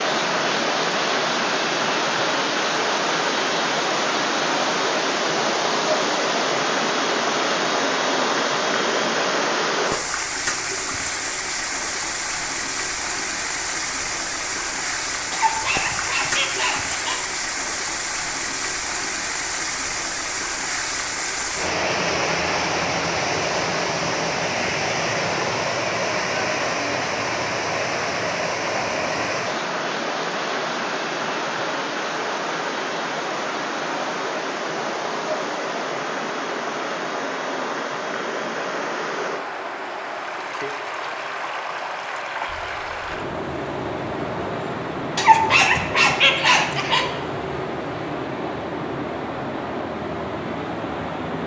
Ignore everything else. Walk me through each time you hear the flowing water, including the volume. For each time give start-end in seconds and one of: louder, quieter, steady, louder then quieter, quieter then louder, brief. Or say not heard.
0.0-51.4 quieter.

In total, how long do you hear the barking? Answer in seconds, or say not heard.
4 s.